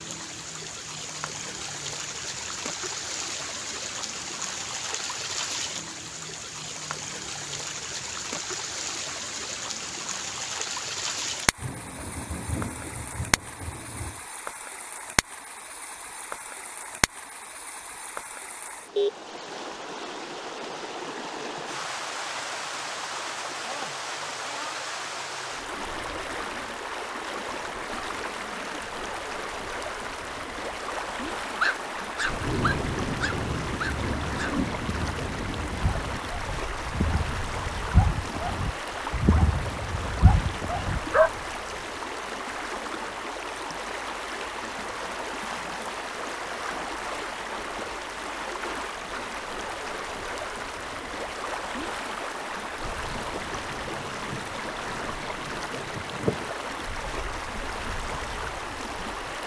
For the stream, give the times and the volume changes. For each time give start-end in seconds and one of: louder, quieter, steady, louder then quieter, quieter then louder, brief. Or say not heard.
0.0-59.4 steady.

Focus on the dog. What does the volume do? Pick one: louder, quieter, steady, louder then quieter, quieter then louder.
quieter then louder.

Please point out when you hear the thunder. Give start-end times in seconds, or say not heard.
11.6-14.2, 32.2-36.2, 53.0-56.5.